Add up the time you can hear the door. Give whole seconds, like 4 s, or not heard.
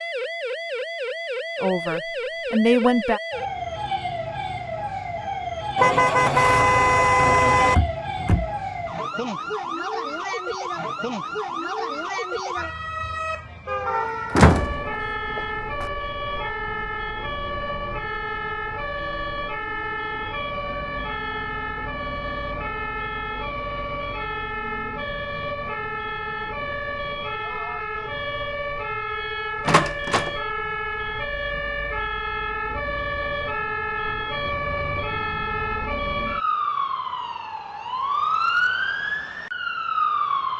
2 s.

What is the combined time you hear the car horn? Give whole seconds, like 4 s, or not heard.
2 s.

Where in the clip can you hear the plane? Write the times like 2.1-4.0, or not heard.
not heard.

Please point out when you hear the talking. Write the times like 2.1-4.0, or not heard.
1.6-3.2.